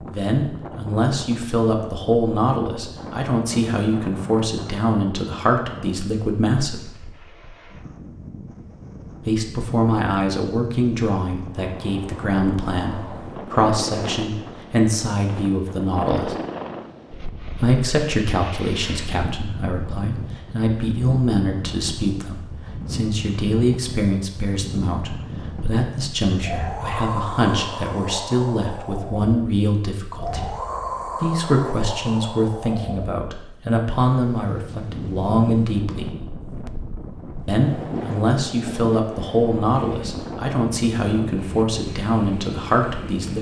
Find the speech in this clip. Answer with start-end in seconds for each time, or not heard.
0.1-6.8, 9.2-16.4, 17.6-30.6, 31.2-36.1, 37.5-43.3.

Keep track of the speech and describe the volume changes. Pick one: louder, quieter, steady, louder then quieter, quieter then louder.
steady.